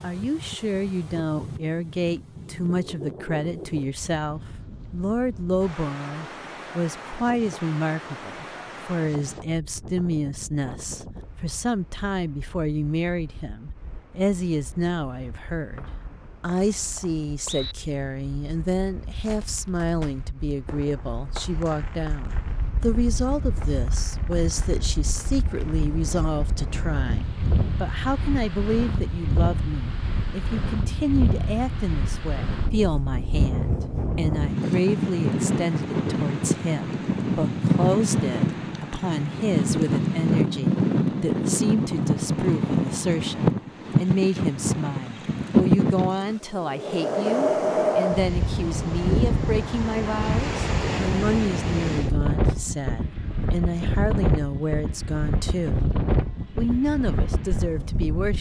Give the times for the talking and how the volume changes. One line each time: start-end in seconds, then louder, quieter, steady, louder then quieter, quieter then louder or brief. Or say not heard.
0.0-55.9 steady
56.5-58.3 brief.